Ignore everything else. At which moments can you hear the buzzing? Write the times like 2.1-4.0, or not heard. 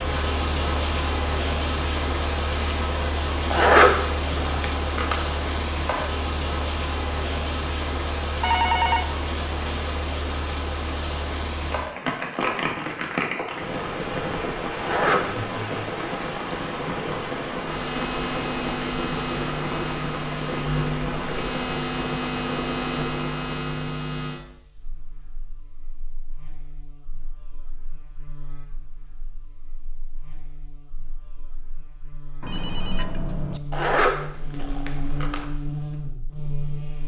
17.6-37.0.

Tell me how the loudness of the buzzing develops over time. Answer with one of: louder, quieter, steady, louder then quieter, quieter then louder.
quieter then louder.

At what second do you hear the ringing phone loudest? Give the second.
9 s.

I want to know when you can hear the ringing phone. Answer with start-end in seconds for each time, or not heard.
8.4-9.2, 32.4-33.6.